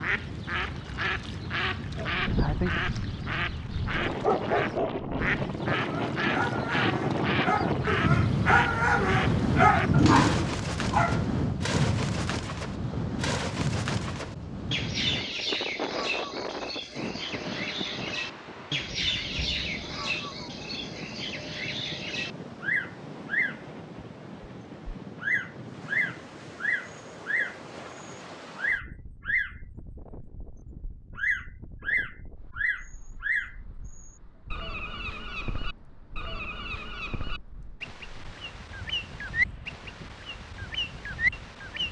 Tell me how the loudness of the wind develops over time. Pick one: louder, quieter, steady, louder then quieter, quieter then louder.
quieter.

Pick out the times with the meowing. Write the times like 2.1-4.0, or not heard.
not heard.